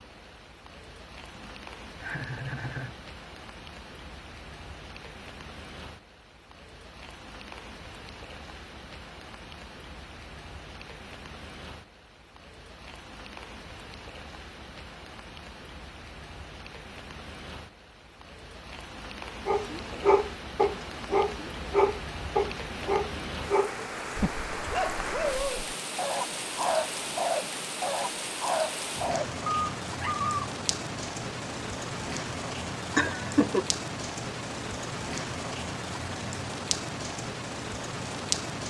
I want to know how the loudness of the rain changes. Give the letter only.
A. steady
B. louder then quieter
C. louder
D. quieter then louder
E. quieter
C.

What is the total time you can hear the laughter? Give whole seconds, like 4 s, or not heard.
2 s.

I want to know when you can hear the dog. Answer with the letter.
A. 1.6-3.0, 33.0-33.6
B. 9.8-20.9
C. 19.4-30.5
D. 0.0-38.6
C.